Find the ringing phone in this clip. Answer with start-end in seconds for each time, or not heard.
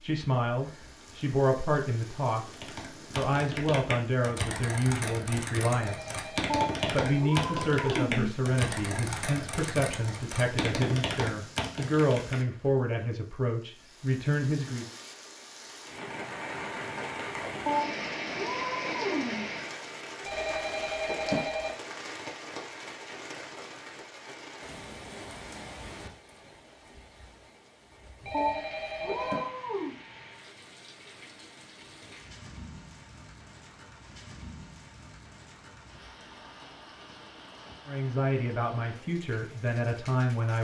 5.8-7.2, 20.2-21.8, 28.2-29.5.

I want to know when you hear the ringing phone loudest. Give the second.
21 s.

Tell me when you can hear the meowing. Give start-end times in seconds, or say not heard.
6.5-8.3, 17.6-19.4, 28.3-29.9.